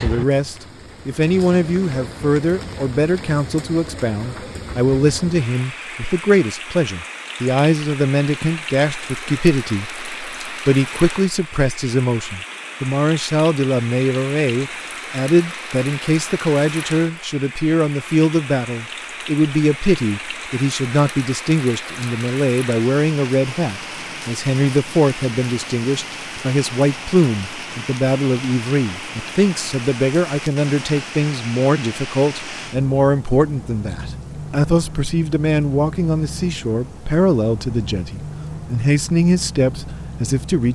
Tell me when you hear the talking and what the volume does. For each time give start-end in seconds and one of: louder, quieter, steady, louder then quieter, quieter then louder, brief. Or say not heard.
0.0-40.7 steady.